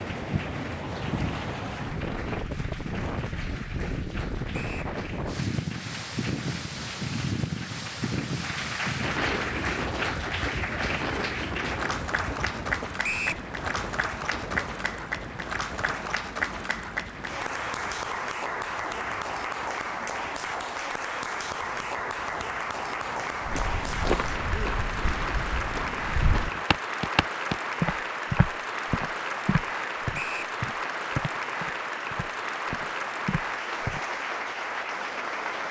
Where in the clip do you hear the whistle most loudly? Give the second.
13 s.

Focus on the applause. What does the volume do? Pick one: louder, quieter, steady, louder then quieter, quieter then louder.
louder.